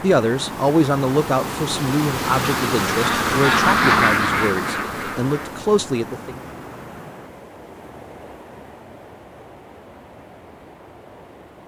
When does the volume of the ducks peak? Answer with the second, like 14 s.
4 s.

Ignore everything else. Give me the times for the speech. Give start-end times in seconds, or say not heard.
0.0-6.3.